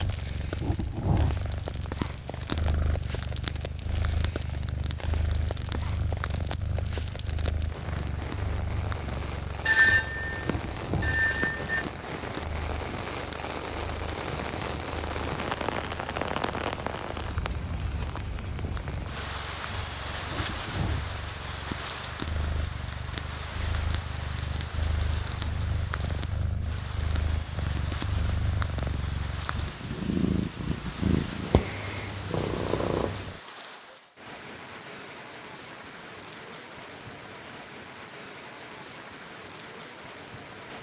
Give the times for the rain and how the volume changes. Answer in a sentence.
The rain can be heard from 0.0 to 40.7 s, getting louder then quieter.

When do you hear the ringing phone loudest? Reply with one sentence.
The loudest moment of the ringing phone is at 10 seconds.